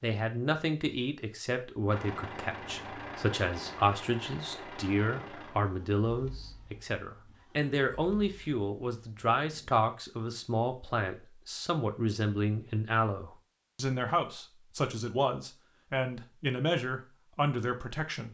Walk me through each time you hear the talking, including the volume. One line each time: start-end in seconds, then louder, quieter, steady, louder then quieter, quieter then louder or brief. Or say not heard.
0.0-18.2 steady.